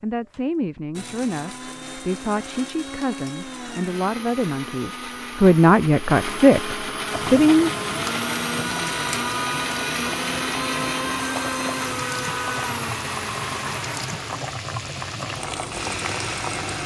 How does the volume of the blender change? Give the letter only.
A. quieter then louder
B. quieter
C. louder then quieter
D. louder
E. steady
C.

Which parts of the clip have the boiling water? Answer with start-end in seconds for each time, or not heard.
7.0-16.8.